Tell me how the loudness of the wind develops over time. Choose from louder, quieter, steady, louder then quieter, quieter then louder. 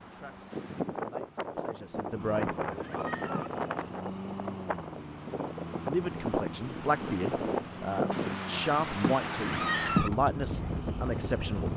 steady.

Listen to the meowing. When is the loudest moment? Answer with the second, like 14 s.
10 s.